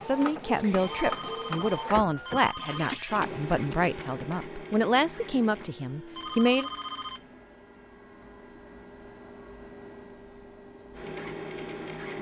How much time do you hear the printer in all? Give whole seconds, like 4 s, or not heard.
12 s.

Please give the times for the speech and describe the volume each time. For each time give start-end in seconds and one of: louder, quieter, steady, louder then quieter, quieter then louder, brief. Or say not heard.
0.1-6.7 steady.